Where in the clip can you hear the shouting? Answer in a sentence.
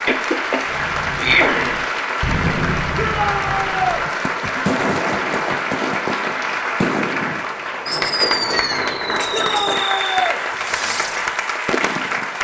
You can hear the shouting from 3.0 to 4.0 s and from 9.3 to 10.4 s.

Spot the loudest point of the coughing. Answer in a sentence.
The loudest moment of the coughing is at 1 second.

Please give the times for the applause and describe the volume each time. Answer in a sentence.
You can hear the applause from 0.0 to 12.3 s, at a steady volume.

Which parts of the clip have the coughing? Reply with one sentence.
You can hear the coughing from 0.1 to 1.9 s, from 4.4 to 5.5 s and from 8.5 to 9.8 s.